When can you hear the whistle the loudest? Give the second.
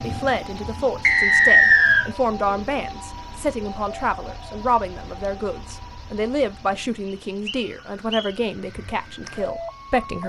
2 s.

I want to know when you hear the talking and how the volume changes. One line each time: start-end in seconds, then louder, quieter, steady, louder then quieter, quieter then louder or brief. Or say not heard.
0.0-10.2 steady.